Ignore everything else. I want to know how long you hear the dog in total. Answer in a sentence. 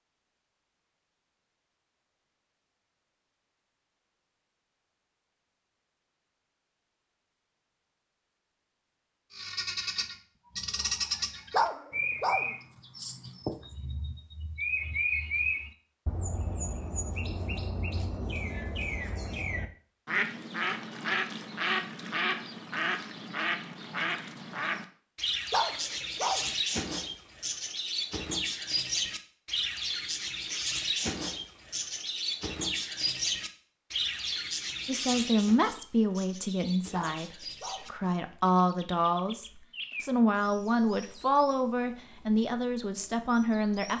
You can hear the dog for 3 seconds altogether.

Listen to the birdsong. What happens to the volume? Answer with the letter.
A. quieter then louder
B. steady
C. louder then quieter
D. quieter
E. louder
D.